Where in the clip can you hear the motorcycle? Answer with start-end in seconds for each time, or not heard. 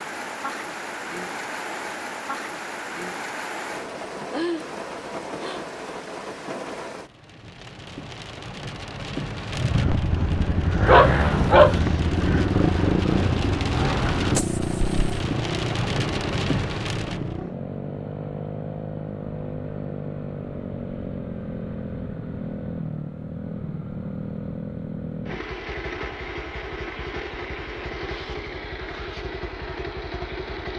9.4-30.7.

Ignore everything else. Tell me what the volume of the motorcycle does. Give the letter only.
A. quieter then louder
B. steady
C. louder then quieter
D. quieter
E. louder
D.